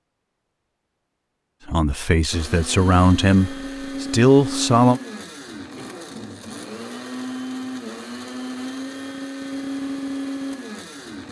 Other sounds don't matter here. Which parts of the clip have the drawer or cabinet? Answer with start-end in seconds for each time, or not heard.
not heard.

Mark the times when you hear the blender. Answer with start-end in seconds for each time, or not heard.
2.3-11.2.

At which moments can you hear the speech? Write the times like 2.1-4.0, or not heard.
1.6-5.0.